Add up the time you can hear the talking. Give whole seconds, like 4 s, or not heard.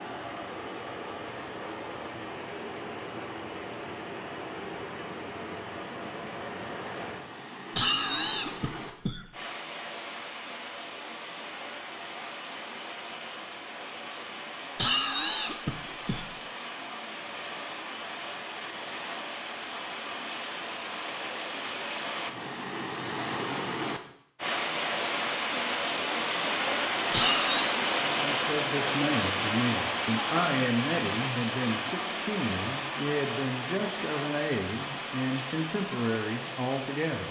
9 s.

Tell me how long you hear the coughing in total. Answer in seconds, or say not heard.
4 s.